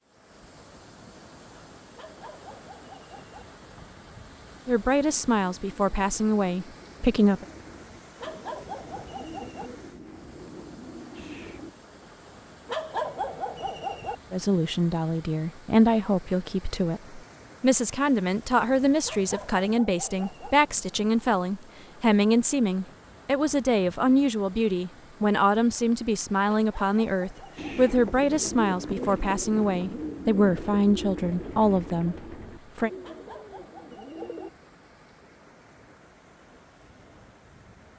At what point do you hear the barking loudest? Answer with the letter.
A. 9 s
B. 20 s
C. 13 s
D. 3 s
C.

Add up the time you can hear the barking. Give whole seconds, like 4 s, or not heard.
9 s.